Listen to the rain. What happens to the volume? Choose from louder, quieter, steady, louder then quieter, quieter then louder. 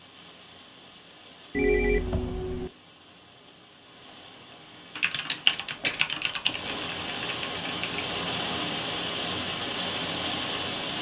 louder.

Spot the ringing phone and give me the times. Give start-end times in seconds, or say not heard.
1.5-2.7, 5.6-6.8.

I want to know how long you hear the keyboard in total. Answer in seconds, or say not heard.
3 s.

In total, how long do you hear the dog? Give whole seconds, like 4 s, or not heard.
not heard.